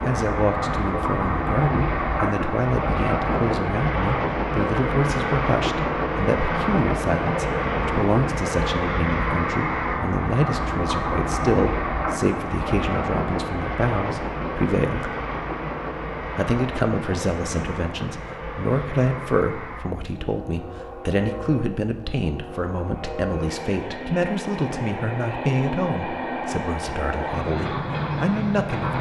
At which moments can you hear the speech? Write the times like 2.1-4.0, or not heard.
0.1-15.2, 16.4-28.9.